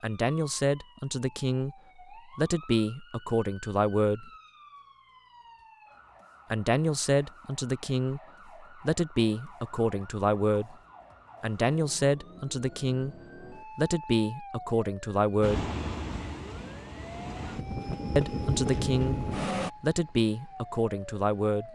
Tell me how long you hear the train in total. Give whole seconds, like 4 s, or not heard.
4 s.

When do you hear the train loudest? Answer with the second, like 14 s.
19 s.